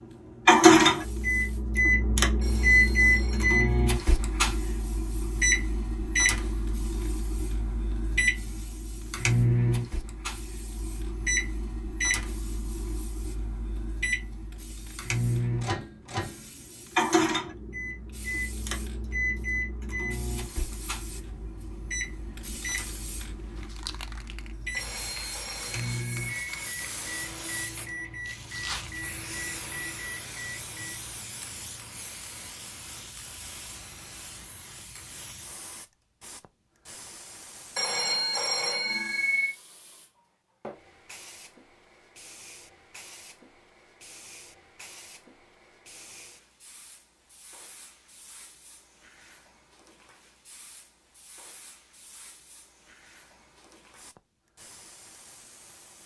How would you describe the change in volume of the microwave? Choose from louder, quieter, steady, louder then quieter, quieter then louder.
quieter.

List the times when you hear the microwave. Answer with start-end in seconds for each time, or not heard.
0.5-31.1.